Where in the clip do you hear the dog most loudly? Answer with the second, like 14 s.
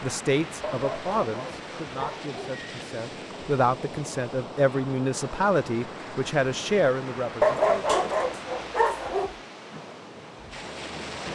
8 s.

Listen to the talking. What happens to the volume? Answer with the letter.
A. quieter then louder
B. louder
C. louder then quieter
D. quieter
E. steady
A.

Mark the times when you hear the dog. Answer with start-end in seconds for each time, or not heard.
0.6-2.5, 7.4-9.3.